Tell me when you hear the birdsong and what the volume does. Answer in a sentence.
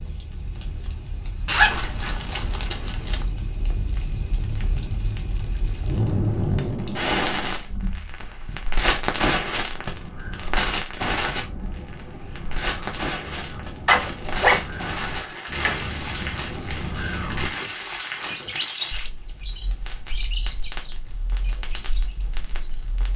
The birdsong can be heard from 9.6 to 22.9 s, getting louder then quieter.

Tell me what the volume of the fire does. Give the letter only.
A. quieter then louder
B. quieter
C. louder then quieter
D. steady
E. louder
C.